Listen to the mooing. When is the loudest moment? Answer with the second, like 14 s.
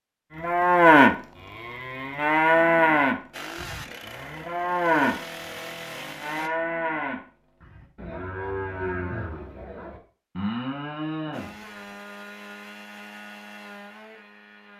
1 s.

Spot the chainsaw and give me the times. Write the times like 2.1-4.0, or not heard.
3.3-6.5, 11.3-14.7.